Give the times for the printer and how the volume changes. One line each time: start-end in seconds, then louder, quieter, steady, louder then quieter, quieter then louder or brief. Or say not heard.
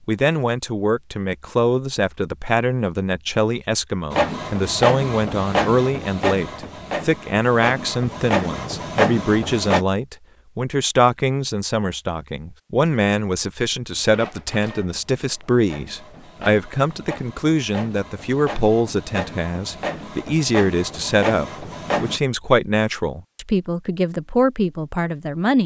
4.1-9.8 quieter then louder
13.9-22.2 louder.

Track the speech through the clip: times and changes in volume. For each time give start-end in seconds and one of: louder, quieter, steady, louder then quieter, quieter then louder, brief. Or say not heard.
0.1-25.6 steady.